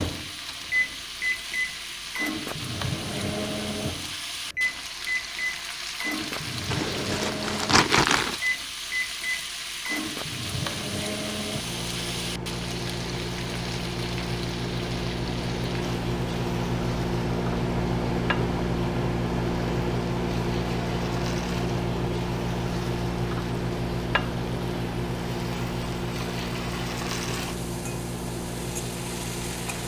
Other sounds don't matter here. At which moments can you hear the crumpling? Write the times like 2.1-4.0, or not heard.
6.7-8.3.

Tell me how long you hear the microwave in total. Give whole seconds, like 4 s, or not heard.
30 s.